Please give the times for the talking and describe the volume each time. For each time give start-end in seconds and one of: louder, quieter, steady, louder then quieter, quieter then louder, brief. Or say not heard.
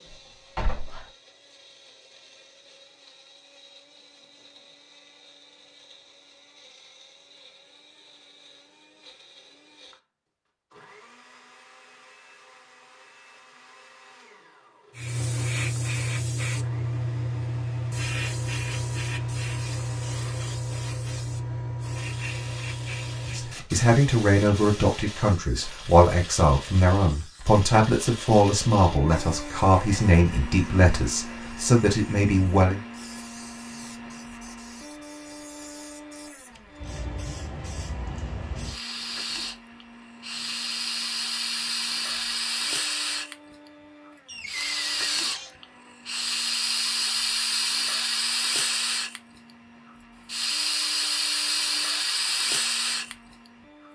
23.3-32.8 steady.